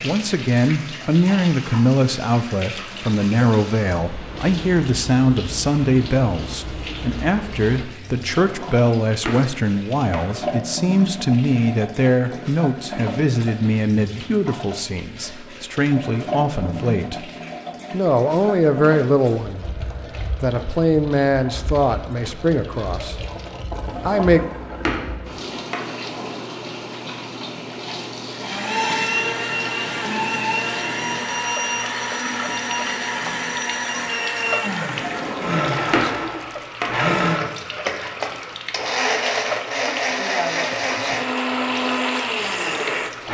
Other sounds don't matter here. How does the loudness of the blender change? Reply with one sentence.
The loudness of the blender stays about the same.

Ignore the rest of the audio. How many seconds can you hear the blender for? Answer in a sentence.
The blender can be heard for 15 seconds in total.